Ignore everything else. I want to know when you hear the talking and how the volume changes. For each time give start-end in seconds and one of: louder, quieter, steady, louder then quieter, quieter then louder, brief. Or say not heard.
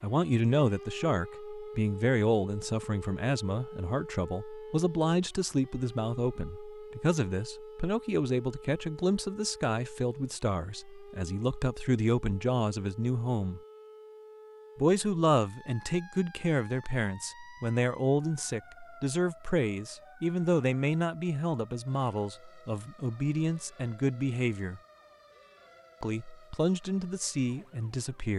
0.0-13.6 steady
14.8-24.8 steady
26.0-28.3 brief.